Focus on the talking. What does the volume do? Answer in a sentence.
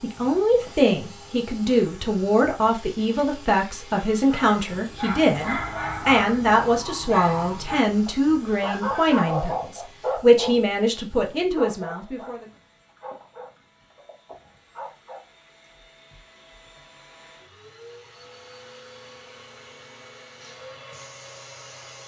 The volume of the talking stays about the same.